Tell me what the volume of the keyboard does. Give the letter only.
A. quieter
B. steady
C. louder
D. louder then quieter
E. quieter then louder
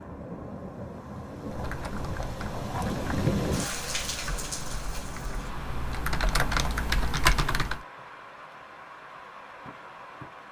C.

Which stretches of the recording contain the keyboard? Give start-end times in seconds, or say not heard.
1.4-7.8.